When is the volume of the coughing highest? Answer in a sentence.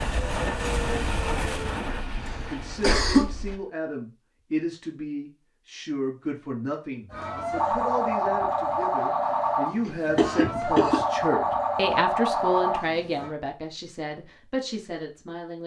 The volume of the coughing peaks at 3 seconds.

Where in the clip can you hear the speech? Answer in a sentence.
The speech can be heard from 2.4 to 15.6 s.